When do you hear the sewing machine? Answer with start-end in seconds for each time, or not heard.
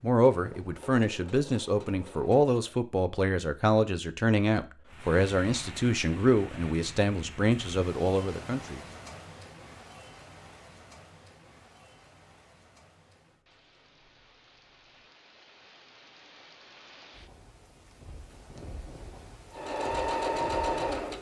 0.0-2.8, 19.5-21.1.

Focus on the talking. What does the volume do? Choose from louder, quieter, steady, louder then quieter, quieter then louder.
steady.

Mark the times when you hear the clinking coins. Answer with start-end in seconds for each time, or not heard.
not heard.